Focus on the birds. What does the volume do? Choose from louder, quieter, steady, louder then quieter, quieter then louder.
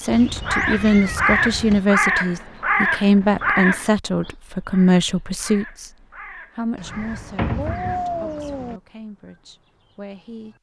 quieter.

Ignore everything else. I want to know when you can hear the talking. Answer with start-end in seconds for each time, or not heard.
0.0-5.9, 6.5-10.5.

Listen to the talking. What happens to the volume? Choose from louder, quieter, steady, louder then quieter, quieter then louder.
quieter.